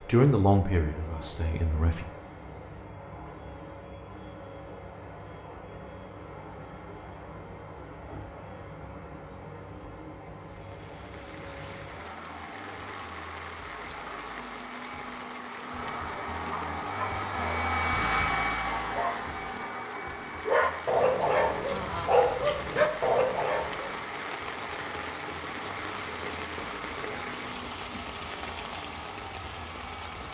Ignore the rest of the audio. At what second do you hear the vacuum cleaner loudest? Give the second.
18 s.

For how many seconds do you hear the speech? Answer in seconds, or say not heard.
2 s.